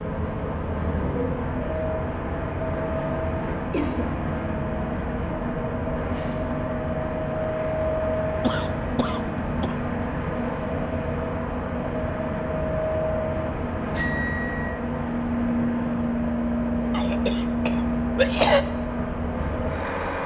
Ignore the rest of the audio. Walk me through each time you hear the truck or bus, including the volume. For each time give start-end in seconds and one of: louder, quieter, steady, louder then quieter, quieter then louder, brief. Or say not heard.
0.0-20.2 steady.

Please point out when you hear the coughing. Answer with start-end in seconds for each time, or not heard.
3.1-4.2, 8.4-9.8, 16.9-18.6.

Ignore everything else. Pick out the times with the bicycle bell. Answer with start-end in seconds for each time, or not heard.
13.9-14.8.